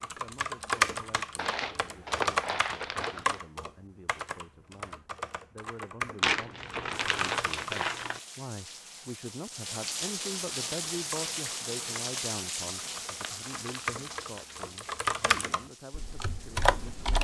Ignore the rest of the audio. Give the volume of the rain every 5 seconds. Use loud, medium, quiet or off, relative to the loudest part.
off, medium, loud, quiet.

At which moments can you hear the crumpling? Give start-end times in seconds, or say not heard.
1.4-3.4, 6.2-8.2, 12.8-14.7.